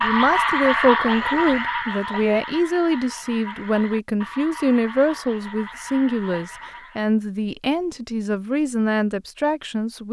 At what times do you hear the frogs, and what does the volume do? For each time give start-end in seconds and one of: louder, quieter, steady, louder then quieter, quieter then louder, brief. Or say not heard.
0.0-7.1 quieter.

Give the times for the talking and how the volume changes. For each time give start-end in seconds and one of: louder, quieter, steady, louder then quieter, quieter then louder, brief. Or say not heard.
0.0-10.0 steady.